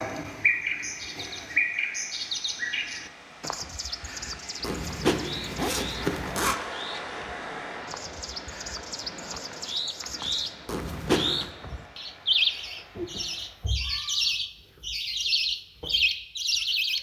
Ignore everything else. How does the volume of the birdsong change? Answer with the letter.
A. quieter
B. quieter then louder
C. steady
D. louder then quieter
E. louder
B.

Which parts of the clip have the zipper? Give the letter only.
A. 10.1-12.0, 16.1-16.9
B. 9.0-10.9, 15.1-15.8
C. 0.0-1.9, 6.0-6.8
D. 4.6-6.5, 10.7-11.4
D.